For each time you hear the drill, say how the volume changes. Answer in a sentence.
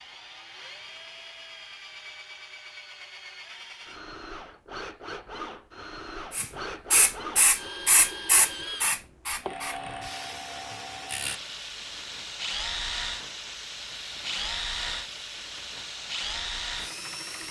The drill can be heard from 0.0 to 17.4 s, getting louder.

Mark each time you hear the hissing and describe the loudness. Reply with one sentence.
The hissing can be heard from 6.3 to 17.4 s, getting quieter.